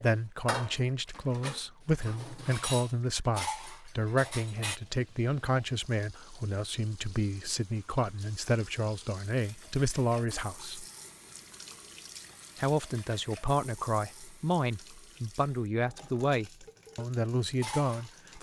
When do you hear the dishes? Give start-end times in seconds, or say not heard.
0.0-4.8, 16.6-18.3.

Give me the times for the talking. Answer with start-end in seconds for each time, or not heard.
0.0-10.8, 12.6-18.3.